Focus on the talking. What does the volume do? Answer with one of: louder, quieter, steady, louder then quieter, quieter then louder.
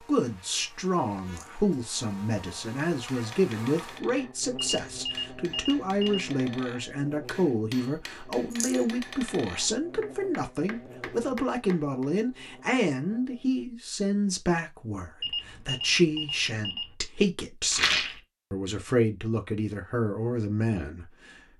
steady.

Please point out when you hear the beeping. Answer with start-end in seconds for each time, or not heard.
4.5-6.2, 15.2-16.9.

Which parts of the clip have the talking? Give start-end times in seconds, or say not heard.
0.0-21.4.